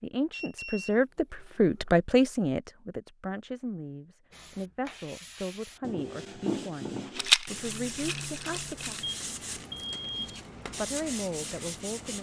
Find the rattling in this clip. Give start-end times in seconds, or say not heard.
7.2-9.1.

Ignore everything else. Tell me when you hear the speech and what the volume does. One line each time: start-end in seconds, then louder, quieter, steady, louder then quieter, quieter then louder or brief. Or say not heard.
0.0-9.0 quieter
10.8-12.1 brief.